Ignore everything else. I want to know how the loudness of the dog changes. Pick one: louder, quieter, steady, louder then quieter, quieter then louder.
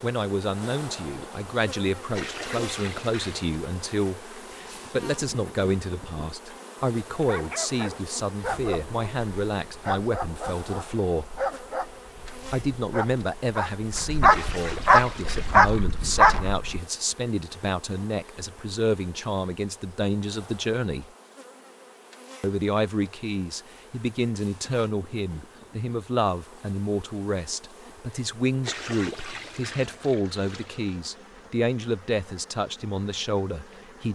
louder.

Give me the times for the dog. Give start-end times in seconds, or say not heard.
7.1-16.8.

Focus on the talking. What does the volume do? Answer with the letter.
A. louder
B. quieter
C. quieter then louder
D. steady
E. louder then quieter
D.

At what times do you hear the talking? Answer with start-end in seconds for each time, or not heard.
0.0-11.3, 12.5-21.1, 22.4-34.1.